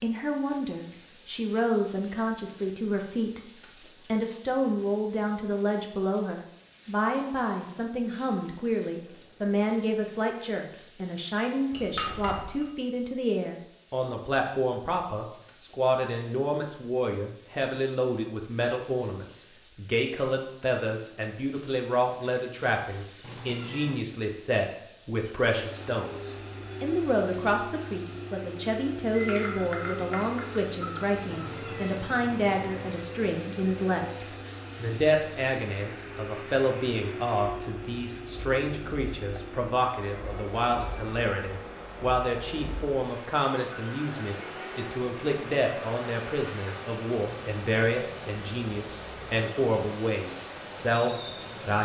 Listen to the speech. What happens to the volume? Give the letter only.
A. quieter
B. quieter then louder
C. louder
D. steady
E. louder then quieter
D.